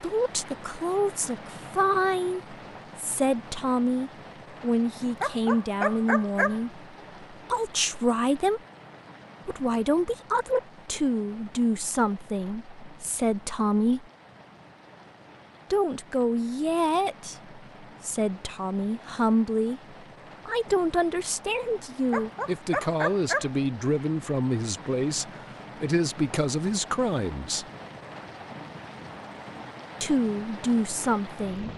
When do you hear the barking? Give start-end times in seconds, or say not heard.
5.1-6.6, 22.0-23.5.